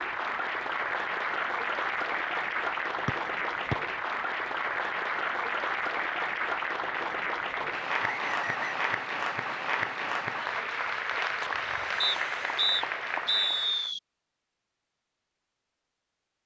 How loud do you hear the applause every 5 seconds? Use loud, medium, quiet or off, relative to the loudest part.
loud, loud, loud, off.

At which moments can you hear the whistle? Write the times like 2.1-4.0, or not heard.
3.0-3.8, 8.0-8.9, 12.0-14.0.